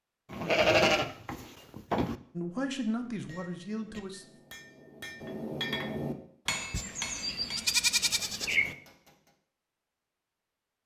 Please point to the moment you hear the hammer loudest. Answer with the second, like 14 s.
6 s.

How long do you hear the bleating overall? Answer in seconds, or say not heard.
4 s.